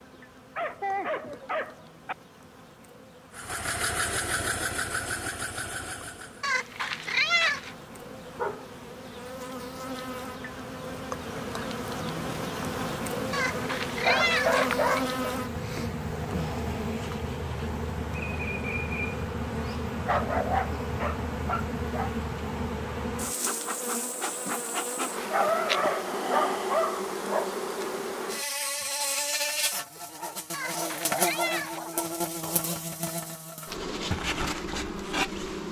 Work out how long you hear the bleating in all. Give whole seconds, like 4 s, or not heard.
not heard.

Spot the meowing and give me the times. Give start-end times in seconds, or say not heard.
6.4-7.8, 13.3-15.0, 30.5-31.8.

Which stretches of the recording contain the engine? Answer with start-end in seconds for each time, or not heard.
3.3-6.5.